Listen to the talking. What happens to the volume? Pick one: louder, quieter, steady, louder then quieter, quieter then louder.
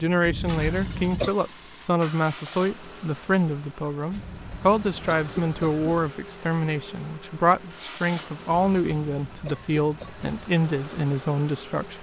steady.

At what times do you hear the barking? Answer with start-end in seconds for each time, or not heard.
not heard.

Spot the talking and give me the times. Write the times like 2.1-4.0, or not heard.
0.0-11.9.